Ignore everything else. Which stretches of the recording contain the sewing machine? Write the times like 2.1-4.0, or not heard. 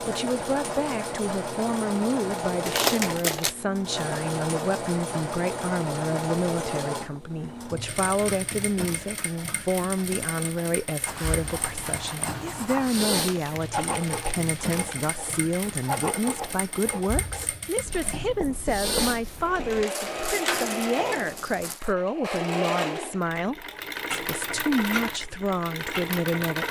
0.0-26.6.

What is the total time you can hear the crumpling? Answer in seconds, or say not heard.
5 s.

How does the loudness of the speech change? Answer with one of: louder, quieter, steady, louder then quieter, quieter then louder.
steady.